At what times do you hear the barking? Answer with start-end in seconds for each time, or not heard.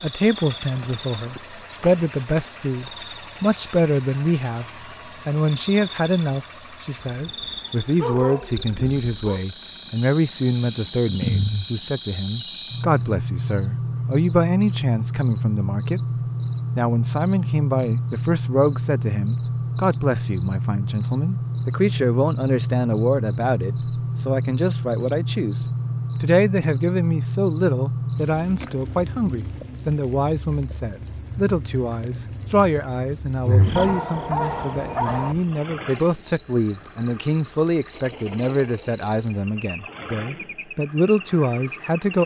7.0-9.4, 33.8-35.4.